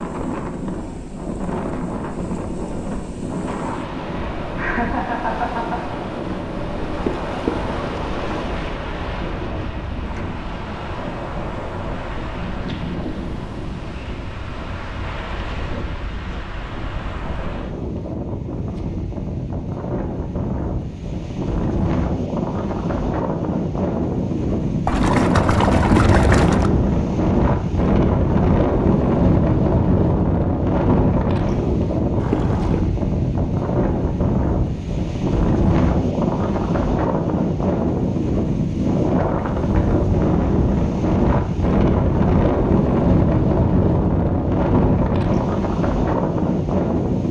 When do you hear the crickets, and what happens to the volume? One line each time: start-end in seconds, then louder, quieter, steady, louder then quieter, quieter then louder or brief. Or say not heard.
not heard.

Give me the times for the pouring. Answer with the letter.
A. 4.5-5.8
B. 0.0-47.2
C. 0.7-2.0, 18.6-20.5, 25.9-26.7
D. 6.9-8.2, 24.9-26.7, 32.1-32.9
D.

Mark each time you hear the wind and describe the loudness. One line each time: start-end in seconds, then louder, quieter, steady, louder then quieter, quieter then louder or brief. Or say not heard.
0.0-47.2 louder.